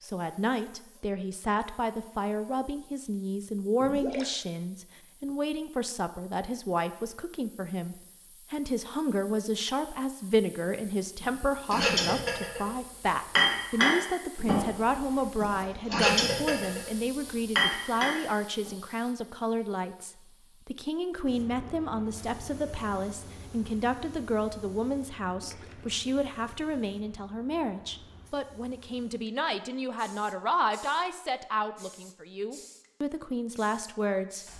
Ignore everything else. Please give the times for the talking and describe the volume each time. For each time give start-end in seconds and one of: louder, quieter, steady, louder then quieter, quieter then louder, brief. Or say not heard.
0.0-34.5 steady.